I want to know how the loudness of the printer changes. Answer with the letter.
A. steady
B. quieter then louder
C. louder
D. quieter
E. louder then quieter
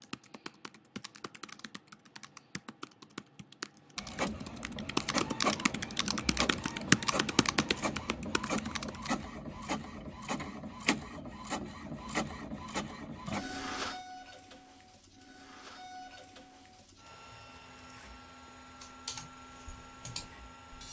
D.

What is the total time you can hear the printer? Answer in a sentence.
You can hear the printer for 17 seconds altogether.